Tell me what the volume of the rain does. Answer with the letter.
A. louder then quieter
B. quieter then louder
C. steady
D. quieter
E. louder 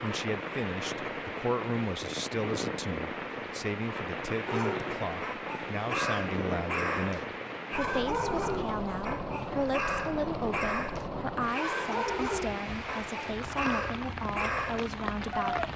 C.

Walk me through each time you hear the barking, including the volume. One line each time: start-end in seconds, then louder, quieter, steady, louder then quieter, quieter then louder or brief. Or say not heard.
4.5-15.6 steady.